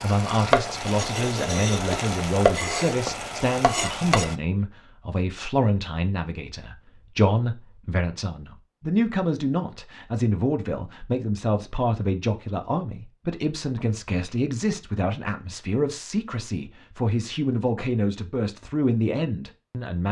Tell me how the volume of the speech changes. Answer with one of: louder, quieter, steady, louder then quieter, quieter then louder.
steady.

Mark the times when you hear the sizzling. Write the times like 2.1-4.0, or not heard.
0.0-4.3.